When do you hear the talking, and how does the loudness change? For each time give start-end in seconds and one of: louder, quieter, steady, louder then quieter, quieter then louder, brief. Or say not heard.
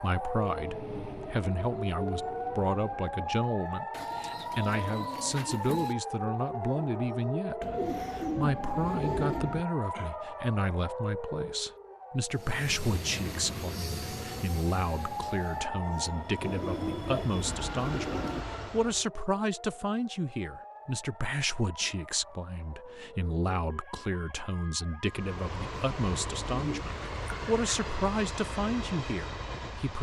0.0-29.9 steady.